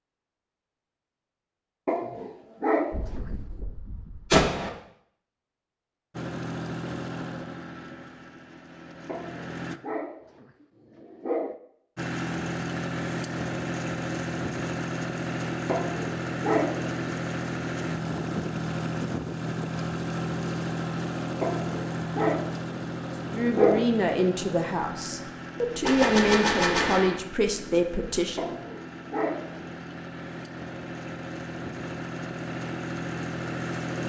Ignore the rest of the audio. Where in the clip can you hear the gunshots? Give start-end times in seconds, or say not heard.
2.9-4.7, 25.9-27.2.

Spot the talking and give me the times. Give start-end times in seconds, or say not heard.
23.3-28.6.